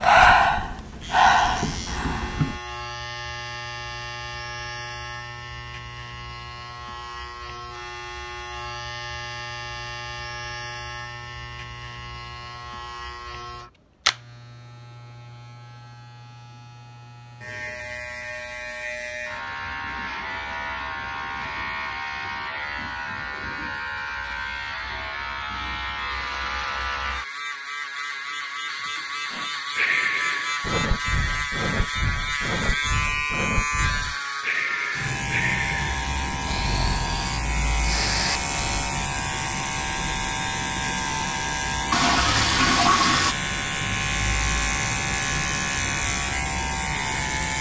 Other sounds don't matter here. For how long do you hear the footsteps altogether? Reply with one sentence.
The footsteps can't be heard in this clip.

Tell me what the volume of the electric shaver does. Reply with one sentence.
The loudness of the electric shaver goes up.